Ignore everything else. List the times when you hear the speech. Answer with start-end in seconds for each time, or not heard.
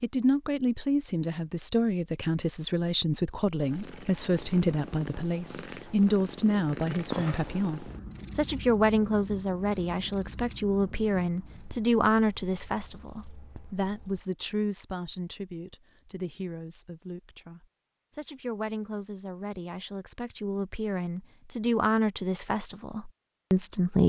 0.0-24.0.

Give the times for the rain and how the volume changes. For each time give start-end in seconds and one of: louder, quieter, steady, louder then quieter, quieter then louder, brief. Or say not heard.
not heard.